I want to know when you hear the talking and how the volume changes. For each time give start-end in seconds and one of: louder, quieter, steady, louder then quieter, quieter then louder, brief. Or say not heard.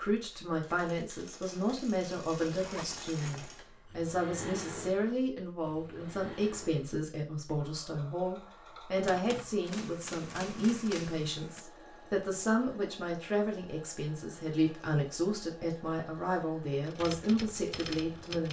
0.0-18.4 steady.